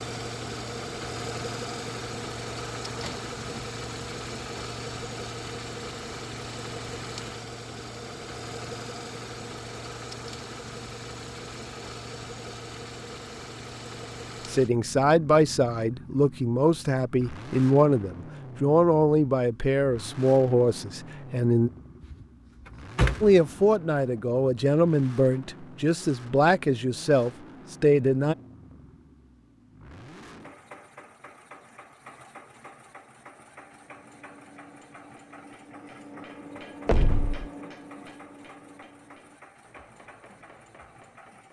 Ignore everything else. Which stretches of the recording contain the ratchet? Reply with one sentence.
You can't hear the ratchet here.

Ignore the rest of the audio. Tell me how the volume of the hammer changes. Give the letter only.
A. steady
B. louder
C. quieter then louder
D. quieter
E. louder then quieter
E.